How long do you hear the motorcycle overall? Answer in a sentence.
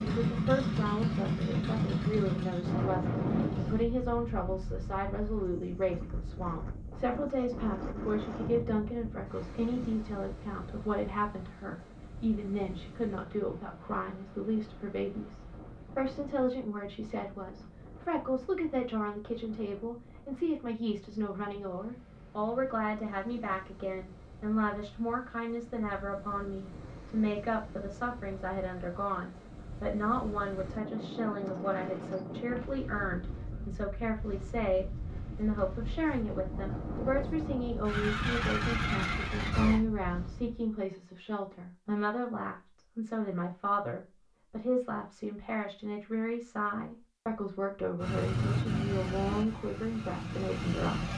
You can hear the motorcycle for 9 seconds altogether.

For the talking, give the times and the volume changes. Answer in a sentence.
You can hear the talking from 0.0 to 51.1 s, at a steady volume.